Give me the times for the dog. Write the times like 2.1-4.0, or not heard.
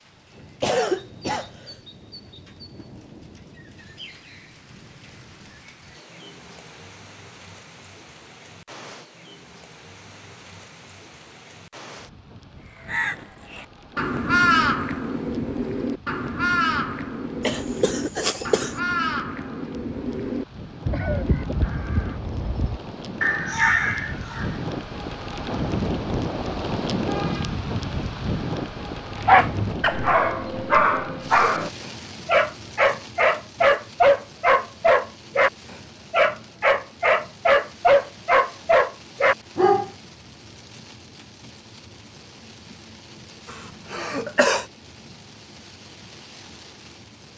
29.1-39.9.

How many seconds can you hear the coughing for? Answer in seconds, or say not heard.
4 s.